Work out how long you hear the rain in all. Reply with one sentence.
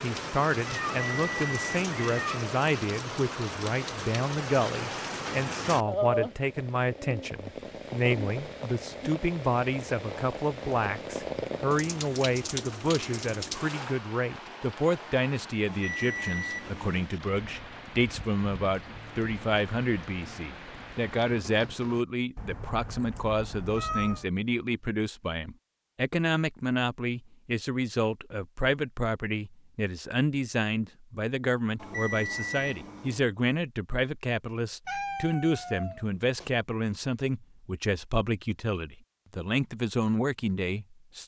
The rain can be heard for 22 seconds in total.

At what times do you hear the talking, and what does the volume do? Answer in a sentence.
You can hear the talking from 0.0 to 41.2 s, at a steady volume.